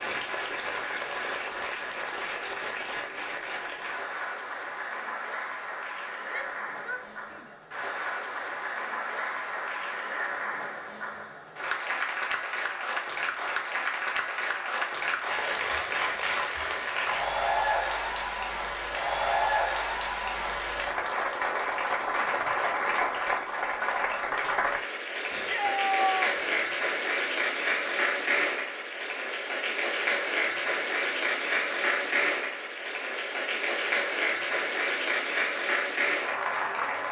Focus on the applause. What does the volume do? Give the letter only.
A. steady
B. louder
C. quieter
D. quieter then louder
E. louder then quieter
B.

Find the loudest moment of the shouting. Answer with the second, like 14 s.
26 s.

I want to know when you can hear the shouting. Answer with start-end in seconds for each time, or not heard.
6.2-7.7, 25.3-26.6.